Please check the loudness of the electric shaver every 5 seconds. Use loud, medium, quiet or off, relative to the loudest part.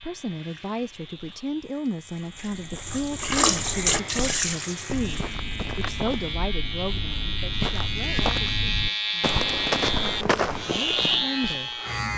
quiet, loud, loud.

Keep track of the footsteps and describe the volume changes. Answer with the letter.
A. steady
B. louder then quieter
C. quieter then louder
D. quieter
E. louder
E.